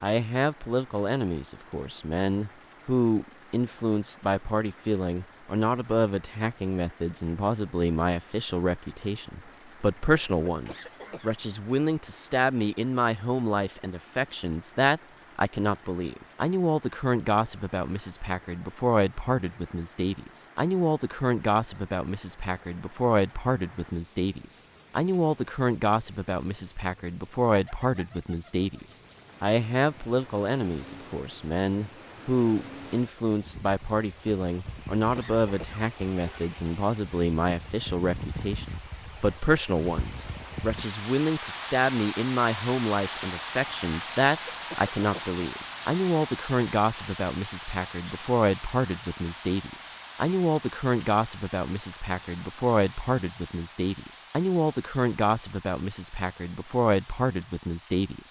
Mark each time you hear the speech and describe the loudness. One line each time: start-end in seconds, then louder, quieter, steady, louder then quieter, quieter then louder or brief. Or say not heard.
0.0-58.2 steady.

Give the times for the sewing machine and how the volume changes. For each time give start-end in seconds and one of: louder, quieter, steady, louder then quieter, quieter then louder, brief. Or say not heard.
not heard.